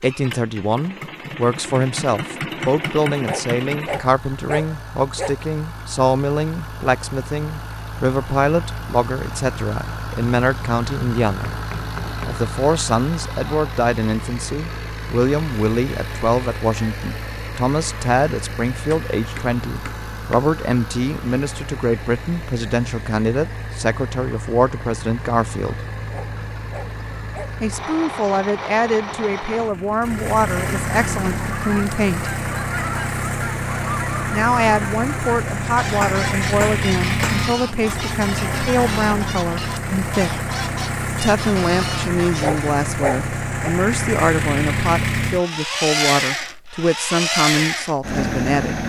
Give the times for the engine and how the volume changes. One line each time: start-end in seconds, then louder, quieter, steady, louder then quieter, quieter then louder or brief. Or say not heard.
0.0-48.8 louder.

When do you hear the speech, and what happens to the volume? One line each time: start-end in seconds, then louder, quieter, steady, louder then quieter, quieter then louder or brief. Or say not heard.
0.0-11.6 steady
12.2-25.8 steady
27.6-32.3 steady
34.3-40.4 steady
41.2-48.8 steady.